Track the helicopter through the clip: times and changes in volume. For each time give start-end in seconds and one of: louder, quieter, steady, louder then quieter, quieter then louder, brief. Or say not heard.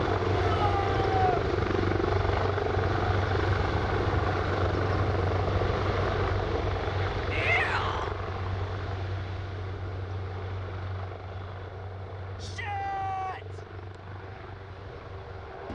0.0-15.7 quieter.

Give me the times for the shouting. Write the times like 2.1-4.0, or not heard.
0.4-1.4, 7.3-8.2, 12.3-13.6.